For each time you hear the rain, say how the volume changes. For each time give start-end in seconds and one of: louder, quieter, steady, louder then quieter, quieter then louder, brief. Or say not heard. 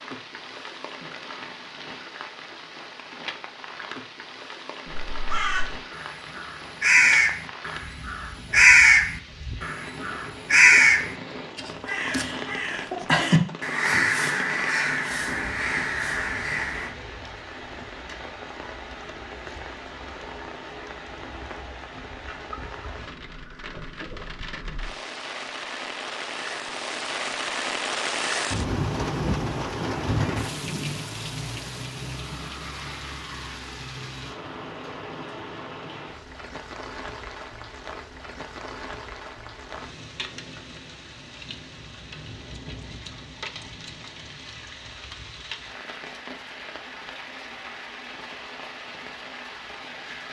0.0-50.2 louder then quieter.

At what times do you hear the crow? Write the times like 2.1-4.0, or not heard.
4.9-16.9.